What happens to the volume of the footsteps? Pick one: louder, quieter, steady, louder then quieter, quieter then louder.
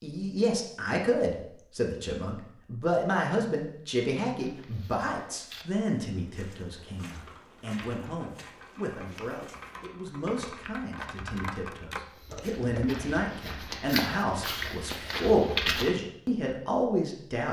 louder.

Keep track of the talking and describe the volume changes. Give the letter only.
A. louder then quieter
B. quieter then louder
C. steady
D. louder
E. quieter
B.